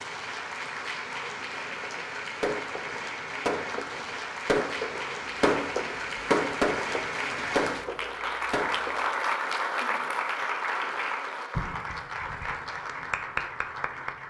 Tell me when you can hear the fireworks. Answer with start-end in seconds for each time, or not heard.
1.6-9.1.